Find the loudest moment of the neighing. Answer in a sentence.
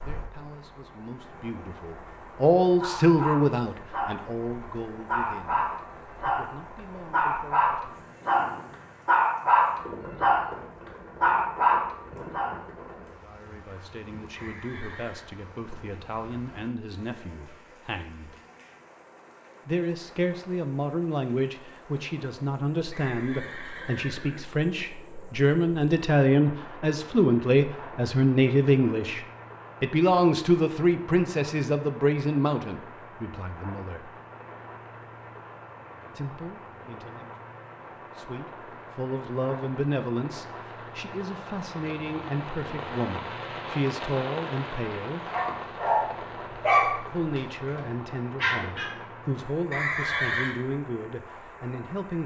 The volume of the neighing peaks at 50 seconds.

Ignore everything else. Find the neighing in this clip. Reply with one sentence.
You can hear the neighing from 14.3 to 15.3 s, from 22.9 to 24.4 s and from 49.7 to 50.5 s.